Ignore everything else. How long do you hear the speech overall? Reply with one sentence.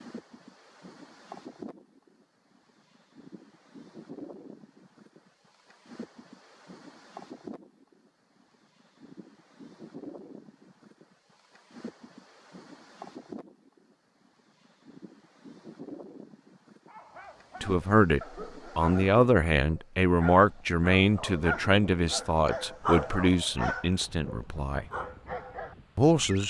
You can hear the speech for 8 seconds altogether.